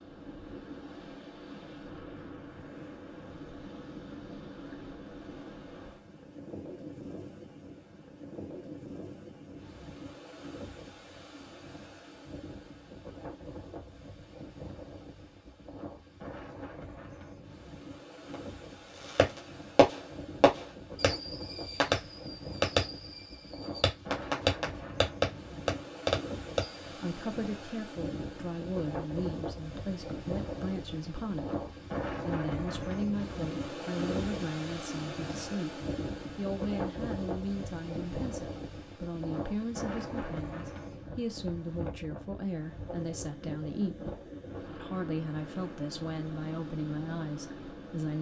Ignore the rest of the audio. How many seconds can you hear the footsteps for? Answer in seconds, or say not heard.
not heard.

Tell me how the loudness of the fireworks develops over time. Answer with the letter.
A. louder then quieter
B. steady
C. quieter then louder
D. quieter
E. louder
C.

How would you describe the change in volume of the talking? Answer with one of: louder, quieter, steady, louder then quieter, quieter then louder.
steady.